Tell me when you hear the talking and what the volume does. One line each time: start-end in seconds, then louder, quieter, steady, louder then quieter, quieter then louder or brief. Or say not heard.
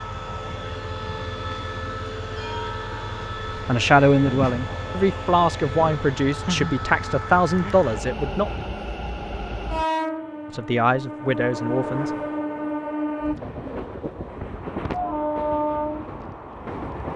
3.6-8.6 steady
10.5-12.1 brief.